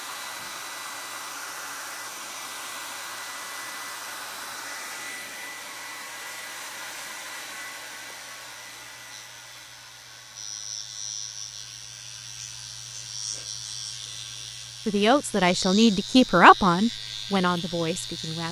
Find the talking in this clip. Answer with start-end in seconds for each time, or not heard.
14.8-18.4.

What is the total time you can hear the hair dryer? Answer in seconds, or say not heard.
18 s.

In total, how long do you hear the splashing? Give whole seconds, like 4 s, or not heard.
not heard.